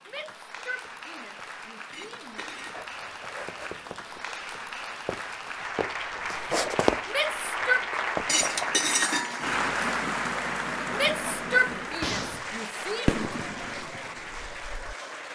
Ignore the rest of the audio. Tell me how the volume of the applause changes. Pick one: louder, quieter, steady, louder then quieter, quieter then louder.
louder then quieter.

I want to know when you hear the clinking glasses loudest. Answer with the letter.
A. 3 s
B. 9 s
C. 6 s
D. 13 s
B.